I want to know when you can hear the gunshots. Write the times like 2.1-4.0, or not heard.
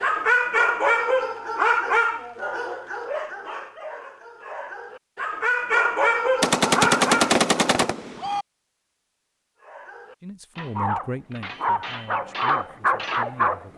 6.4-8.4.